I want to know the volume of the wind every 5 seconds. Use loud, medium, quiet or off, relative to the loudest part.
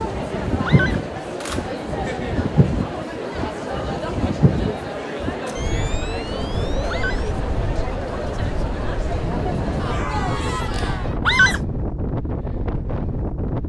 loud, medium, loud.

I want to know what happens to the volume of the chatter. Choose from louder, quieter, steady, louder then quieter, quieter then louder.
steady.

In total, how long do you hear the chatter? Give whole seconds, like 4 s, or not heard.
11 s.